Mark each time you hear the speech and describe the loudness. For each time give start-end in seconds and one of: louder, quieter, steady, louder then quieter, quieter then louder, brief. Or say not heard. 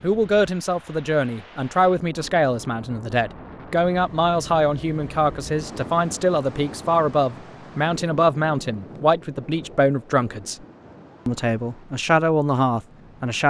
0.0-10.6 steady
11.2-13.4 brief.